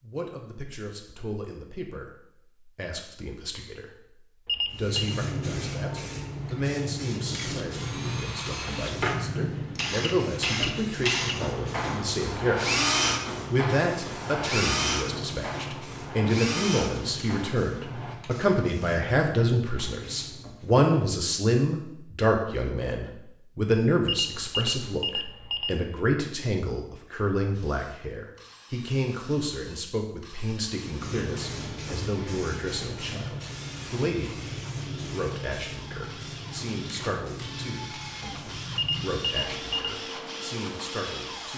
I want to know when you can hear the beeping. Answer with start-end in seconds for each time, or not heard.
4.5-5.2, 24.1-25.8, 38.8-40.0.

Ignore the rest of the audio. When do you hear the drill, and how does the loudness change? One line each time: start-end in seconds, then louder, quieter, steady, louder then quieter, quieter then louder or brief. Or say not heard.
7.2-18.1 louder then quieter
27.5-41.5 louder.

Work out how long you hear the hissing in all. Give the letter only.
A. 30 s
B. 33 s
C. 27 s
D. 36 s
C.